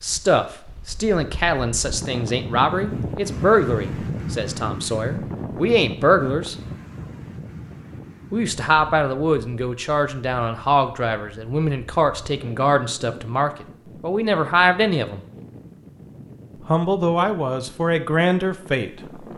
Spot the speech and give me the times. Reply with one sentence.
You can hear the speech from 0.0 to 6.5 s, from 8.3 to 15.2 s and from 16.6 to 18.9 s.